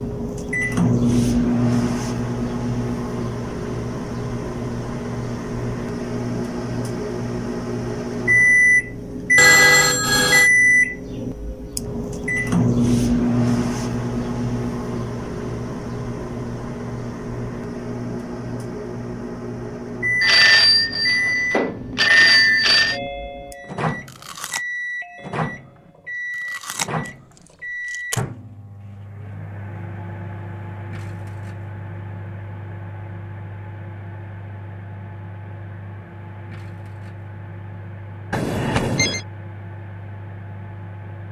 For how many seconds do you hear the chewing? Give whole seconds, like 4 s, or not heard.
5 s.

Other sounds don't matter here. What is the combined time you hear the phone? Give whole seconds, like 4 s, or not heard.
5 s.